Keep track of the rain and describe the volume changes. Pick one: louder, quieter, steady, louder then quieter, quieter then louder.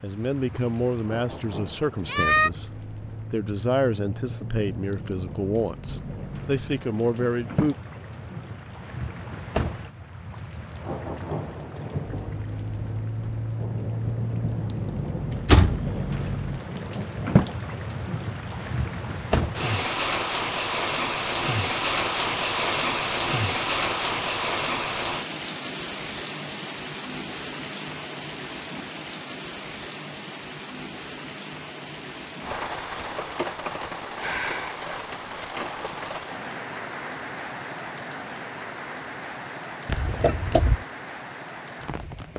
louder then quieter.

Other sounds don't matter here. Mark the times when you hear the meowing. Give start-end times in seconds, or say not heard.
2.0-2.5.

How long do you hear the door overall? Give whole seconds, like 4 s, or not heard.
2 s.